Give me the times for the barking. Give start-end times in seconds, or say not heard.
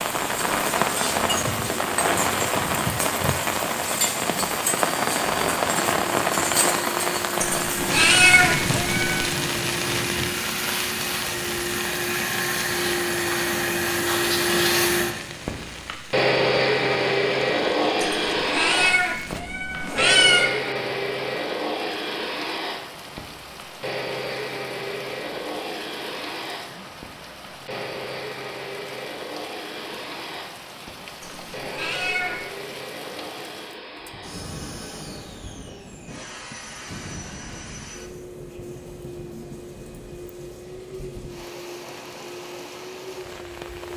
not heard.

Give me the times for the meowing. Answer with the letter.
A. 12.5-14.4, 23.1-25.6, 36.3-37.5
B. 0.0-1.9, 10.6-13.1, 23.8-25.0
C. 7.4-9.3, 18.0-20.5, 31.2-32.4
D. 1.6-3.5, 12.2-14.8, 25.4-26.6
C.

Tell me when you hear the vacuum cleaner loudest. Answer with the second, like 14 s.
17 s.